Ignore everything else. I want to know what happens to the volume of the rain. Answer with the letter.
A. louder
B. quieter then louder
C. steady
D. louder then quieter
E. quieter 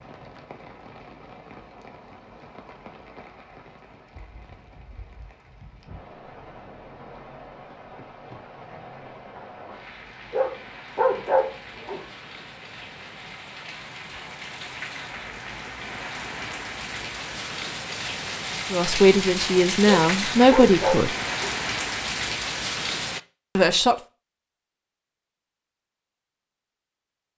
A.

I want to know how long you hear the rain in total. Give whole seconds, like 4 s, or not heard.
23 s.